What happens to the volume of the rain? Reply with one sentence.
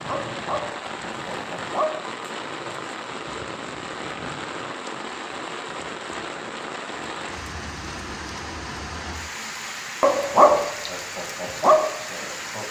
The volume of the rain stays about the same.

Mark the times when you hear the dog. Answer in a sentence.
You can hear the dog from 0.0 to 2.9 s and from 10.0 to 12.6 s.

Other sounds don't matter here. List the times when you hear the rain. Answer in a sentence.
You can hear the rain from 0.0 to 12.6 s.